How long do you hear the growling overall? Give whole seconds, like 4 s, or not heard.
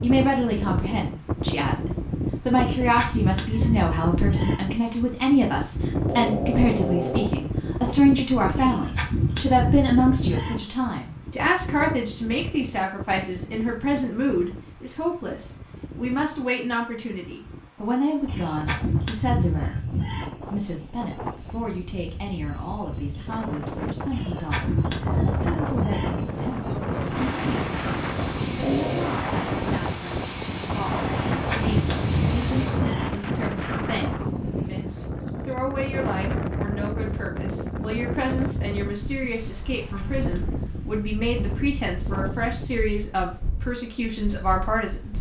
3 s.